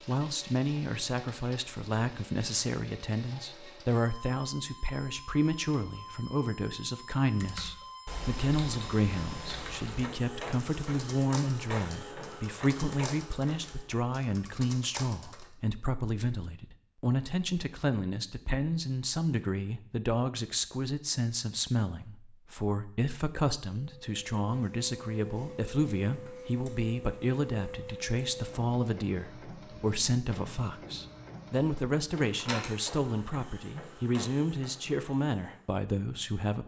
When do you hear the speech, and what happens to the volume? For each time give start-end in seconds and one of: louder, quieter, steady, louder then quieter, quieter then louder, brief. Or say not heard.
0.1-36.6 steady.